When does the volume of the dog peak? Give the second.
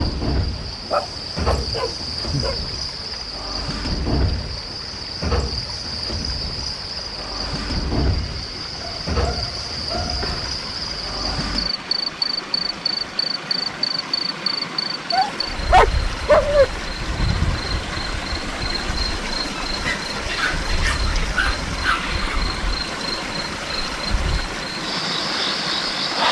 16 s.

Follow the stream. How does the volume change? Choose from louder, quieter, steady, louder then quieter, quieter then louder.
louder.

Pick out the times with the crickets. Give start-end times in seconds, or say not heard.
0.0-26.2.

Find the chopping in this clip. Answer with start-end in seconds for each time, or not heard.
not heard.